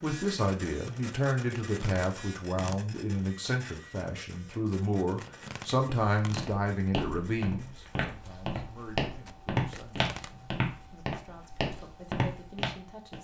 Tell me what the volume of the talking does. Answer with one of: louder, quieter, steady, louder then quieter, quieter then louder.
quieter.